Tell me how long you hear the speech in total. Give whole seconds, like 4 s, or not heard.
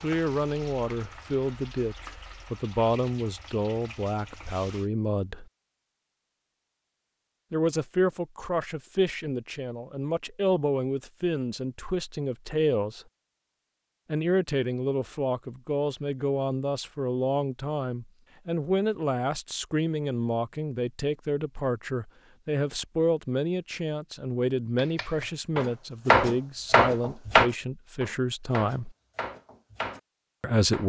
26 s.